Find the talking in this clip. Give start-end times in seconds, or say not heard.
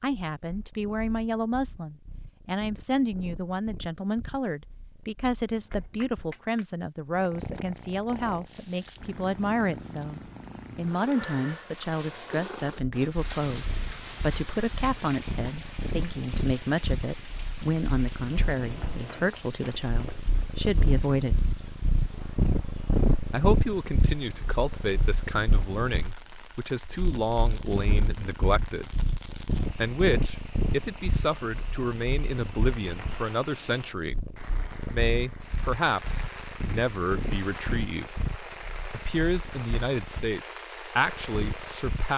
0.0-21.5, 23.3-28.9, 29.8-38.1, 38.9-42.1.